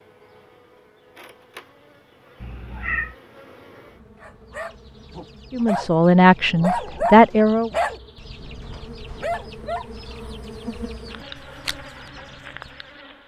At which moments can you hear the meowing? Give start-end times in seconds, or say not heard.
2.4-3.1.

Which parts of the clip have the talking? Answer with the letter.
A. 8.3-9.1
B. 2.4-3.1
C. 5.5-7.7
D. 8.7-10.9
C.